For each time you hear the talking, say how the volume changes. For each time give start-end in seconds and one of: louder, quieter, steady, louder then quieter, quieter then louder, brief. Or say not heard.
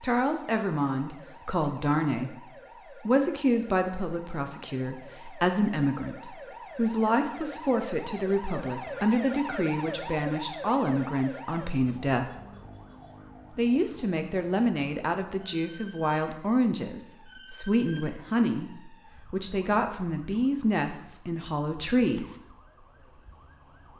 0.0-2.4 brief
3.0-12.3 steady
13.6-22.4 steady.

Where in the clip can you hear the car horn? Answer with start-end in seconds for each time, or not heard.
not heard.